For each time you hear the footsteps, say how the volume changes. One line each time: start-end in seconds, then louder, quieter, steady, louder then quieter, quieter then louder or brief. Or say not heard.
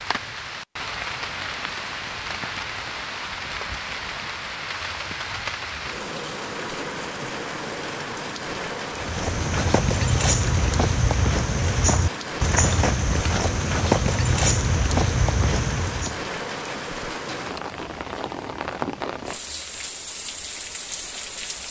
8.9-16.2 steady.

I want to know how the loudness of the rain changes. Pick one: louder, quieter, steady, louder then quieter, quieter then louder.
steady.